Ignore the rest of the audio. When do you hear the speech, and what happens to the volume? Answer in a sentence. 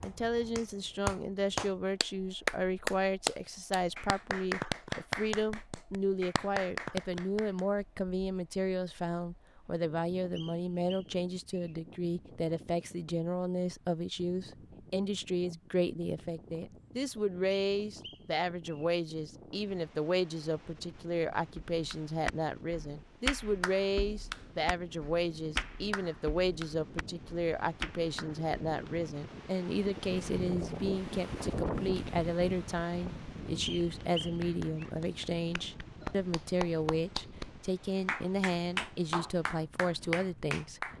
The speech can be heard from 0.0 to 40.9 s, at a steady volume.